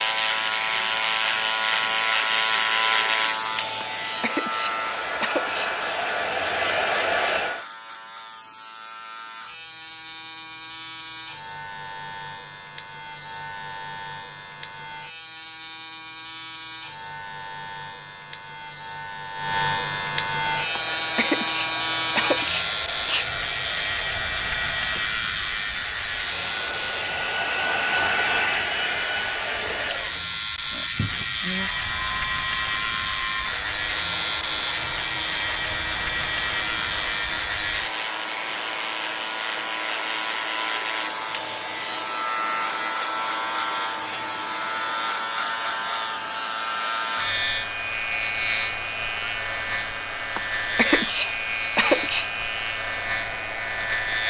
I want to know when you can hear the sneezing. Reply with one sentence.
The sneezing can be heard from 3.8 to 5.7 s, from 20.8 to 23.3 s and from 50.4 to 52.3 s.